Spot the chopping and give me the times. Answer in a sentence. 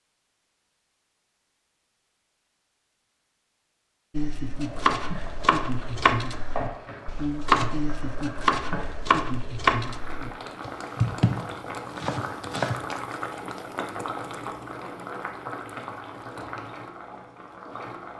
The chopping can be heard from 4.2 to 12.8 s.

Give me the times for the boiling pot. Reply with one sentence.
The boiling pot can be heard from 4.5 to 18.1 s.